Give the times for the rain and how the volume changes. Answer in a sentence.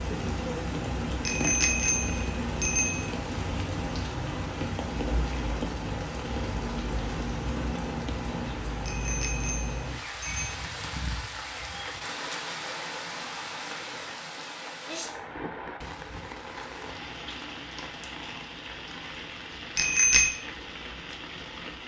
You can hear the rain from 0.0 to 21.8 s, getting quieter.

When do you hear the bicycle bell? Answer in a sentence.
You can hear the bicycle bell from 1.2 to 3.1 s, from 8.8 to 10.6 s and from 19.8 to 20.4 s.